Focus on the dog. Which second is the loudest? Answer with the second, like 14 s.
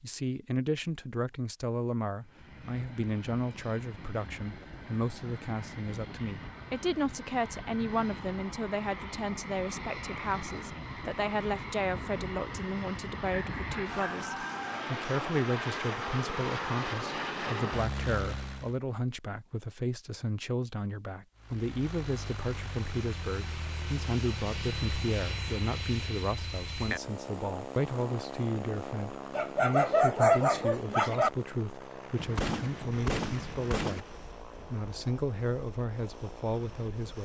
30 s.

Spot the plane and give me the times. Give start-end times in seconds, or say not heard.
2.2-18.8, 21.4-37.2.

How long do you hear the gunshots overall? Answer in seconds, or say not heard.
2 s.